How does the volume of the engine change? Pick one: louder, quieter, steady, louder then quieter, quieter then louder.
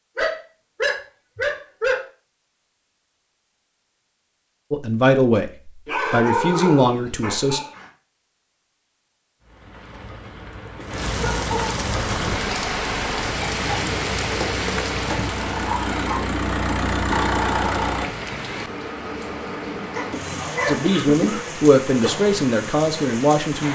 louder.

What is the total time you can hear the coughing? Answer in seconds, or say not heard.
2 s.